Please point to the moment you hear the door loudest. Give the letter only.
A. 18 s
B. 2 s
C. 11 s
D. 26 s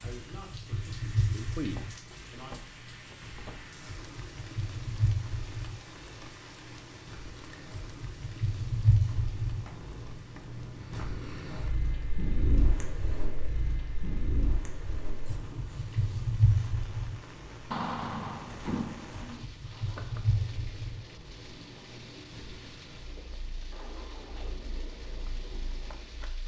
A.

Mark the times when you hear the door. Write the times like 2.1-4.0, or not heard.
1.6-3.6, 9.5-11.7, 17.7-19.4.